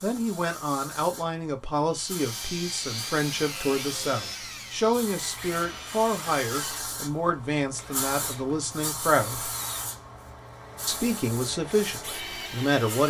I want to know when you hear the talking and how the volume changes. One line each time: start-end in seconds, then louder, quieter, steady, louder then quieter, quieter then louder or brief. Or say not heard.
0.0-9.5 steady
10.8-13.0 brief.